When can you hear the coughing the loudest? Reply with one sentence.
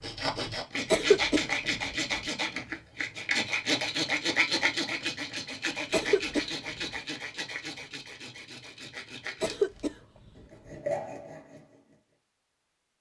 The loudest moment of the coughing is at 1 second.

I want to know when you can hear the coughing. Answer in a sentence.
The coughing can be heard from 0.9 to 1.4 s, from 5.9 to 6.5 s and from 9.4 to 9.9 s.